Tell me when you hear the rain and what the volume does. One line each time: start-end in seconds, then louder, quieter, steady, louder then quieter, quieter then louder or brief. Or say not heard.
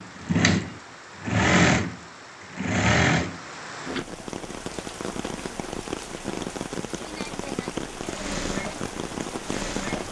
0.0-10.0 louder.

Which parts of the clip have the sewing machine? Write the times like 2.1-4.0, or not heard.
0.0-4.0, 8.0-10.0.